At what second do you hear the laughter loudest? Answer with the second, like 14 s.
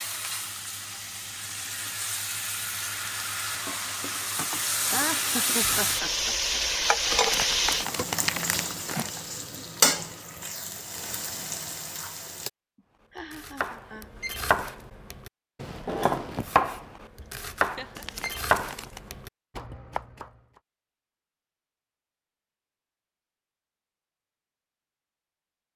5 s.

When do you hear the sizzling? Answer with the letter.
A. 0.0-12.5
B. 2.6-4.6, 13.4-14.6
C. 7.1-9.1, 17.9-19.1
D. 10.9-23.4
A.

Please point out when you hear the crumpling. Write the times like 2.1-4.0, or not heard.
7.1-9.1, 17.9-19.1.